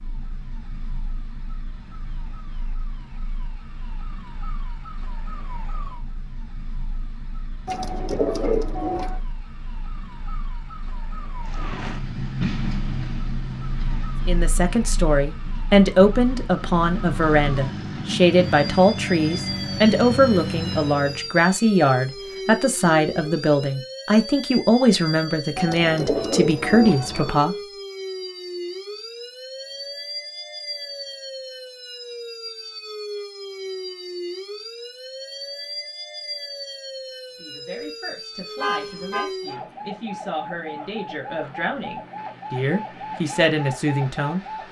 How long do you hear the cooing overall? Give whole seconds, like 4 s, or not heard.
3 s.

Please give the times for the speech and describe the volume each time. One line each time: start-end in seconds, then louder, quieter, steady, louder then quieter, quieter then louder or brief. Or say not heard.
14.2-27.6 steady
37.4-44.4 louder.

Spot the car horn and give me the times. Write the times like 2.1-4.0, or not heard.
38.5-39.3.